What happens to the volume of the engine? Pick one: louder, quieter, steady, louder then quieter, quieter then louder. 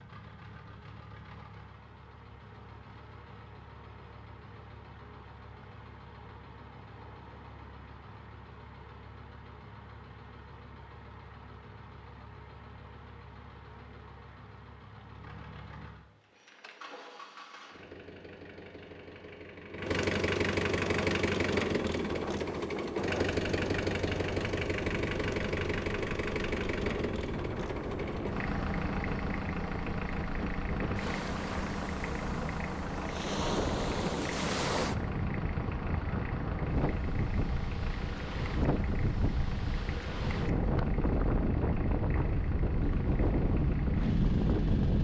louder then quieter.